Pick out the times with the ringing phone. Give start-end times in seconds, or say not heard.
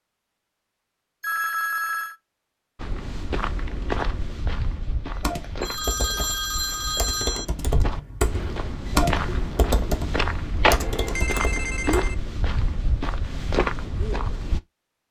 1.2-2.1, 5.6-7.5, 10.8-12.2.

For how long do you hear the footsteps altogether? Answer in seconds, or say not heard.
12 s.